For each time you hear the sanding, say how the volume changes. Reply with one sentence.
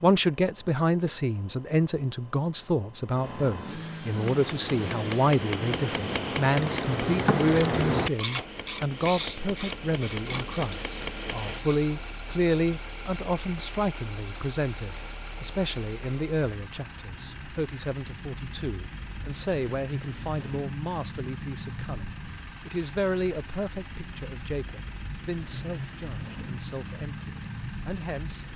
The sanding can't be heard in this clip.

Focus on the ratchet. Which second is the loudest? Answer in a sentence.
The volume of the ratchet peaks at 8 seconds.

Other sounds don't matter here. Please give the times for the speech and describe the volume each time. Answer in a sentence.
You can hear the speech from 0.0 to 28.4 s, getting quieter.